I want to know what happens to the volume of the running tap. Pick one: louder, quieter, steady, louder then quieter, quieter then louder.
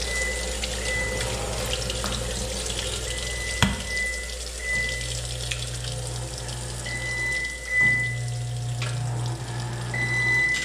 quieter.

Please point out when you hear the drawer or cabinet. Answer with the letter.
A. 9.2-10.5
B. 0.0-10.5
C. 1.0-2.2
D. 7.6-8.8
C.